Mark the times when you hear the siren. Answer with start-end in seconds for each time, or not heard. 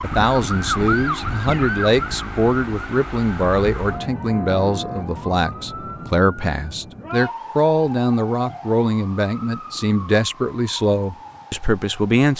0.0-12.3.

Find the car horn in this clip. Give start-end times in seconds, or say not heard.
not heard.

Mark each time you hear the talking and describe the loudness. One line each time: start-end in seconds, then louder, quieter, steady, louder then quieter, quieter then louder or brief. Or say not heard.
0.0-12.3 steady.